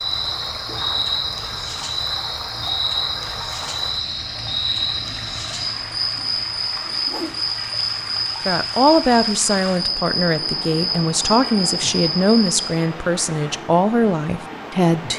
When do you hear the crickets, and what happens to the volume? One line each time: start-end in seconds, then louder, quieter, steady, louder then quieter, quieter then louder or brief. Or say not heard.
0.0-12.7 steady.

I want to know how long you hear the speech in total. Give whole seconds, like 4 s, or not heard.
7 s.